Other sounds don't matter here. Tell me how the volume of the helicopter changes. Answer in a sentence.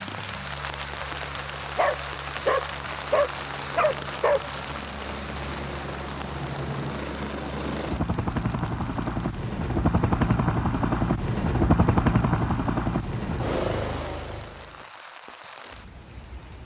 The volume of the helicopter goes up.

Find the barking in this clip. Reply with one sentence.
The barking can be heard from 1.8 to 4.5 s.